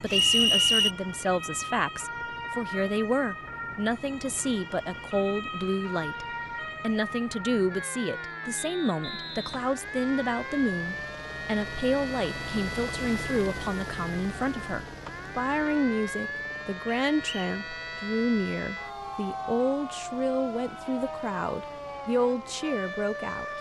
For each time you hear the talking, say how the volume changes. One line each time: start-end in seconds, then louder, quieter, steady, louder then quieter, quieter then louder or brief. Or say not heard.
0.0-23.4 steady.